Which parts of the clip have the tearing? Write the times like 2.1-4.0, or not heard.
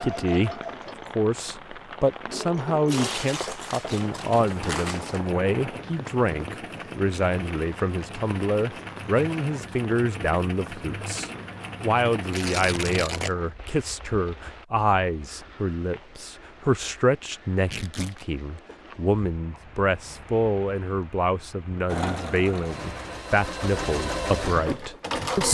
2.9-5.3, 12.3-13.3, 17.6-18.2.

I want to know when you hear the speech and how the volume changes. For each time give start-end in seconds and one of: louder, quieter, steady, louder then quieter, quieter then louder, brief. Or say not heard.
0.0-25.4 steady.